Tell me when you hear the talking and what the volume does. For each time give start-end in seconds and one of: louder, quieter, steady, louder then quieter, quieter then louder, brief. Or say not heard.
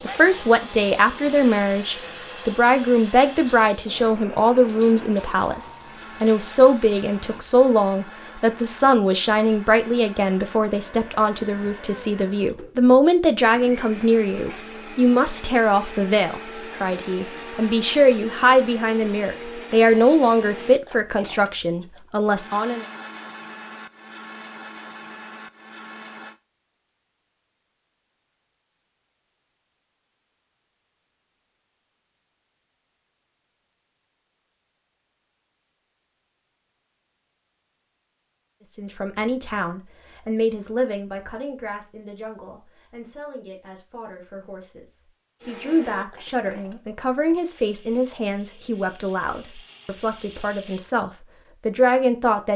0.0-22.9 steady
38.8-52.5 quieter then louder.